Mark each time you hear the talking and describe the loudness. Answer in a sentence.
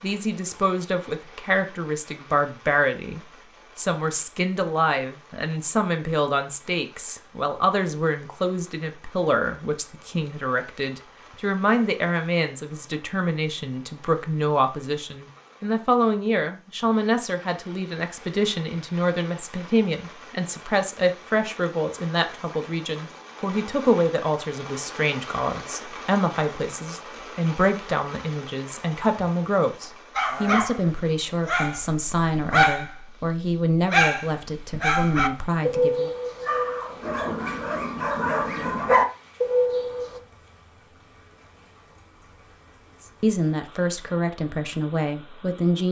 You can hear the talking from 0.0 to 36.1 s, at a steady volume; and briefly from 43.2 to 45.8 s.